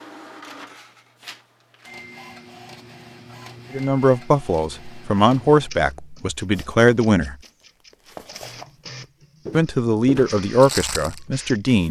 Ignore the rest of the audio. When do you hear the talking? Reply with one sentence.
You can hear the talking from 3.7 to 7.3 s and from 9.5 to 11.8 s.